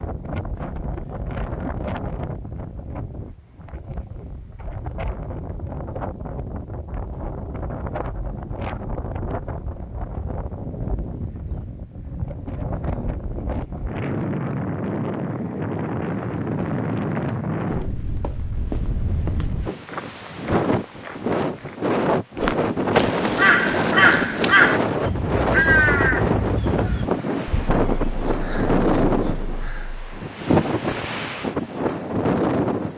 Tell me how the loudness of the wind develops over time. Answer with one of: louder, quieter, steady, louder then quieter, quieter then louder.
louder.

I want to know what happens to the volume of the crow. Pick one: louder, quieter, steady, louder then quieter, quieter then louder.
quieter.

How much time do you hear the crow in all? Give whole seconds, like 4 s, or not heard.
8 s.